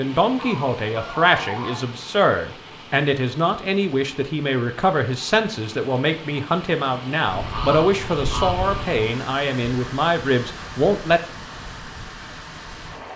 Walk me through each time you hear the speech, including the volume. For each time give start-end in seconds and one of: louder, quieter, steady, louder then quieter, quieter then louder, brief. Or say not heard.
0.0-11.2 steady.